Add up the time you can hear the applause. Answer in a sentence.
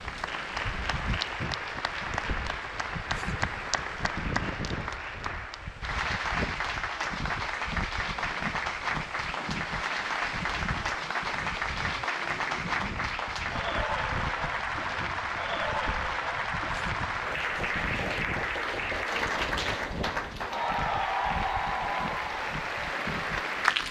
You can hear the applause for 24 seconds altogether.